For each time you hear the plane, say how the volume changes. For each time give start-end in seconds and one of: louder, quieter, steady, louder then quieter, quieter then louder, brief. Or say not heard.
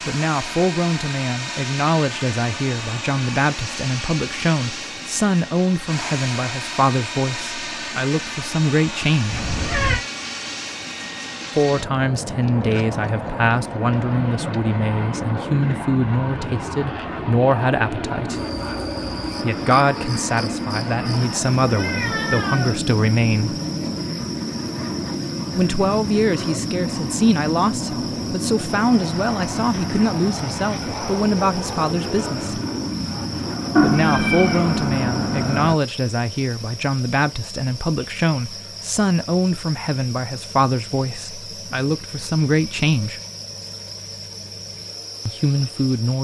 0.0-35.6 steady.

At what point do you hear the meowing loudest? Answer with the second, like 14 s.
34 s.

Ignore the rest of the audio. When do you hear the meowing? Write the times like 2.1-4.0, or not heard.
9.3-10.0, 21.7-22.8, 33.8-35.8.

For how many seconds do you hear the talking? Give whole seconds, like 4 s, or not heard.
38 s.